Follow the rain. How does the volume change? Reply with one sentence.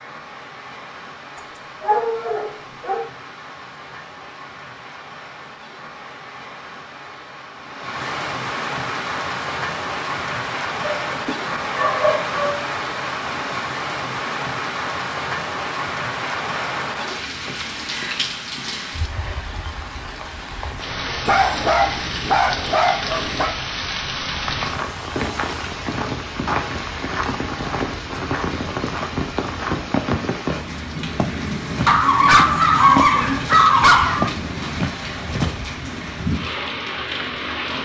The volume of the rain goes up.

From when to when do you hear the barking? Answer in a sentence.
The barking can be heard from 1.4 to 3.0 s, from 10.8 to 12.6 s, from 21.2 to 23.5 s and from 31.9 to 34.3 s.